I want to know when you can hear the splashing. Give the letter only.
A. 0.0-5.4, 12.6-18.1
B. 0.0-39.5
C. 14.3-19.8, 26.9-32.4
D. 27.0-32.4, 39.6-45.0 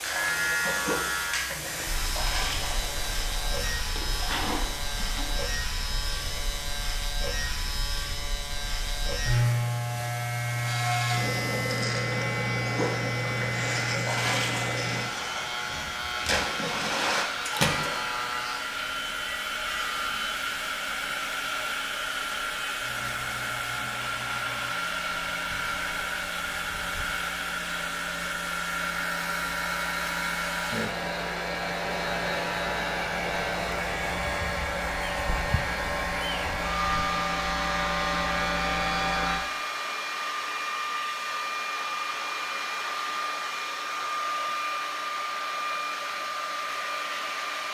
A.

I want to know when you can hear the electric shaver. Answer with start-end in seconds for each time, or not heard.
0.0-39.5.